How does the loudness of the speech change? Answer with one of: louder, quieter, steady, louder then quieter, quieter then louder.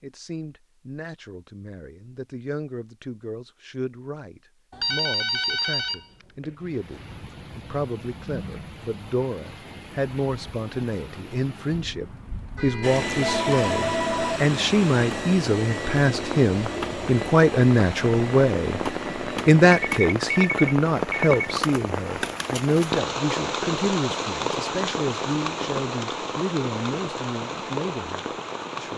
louder then quieter.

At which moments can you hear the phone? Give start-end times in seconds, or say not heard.
4.7-6.5, 12.6-14.4, 19.7-21.3.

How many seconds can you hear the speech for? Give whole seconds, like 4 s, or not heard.
29 s.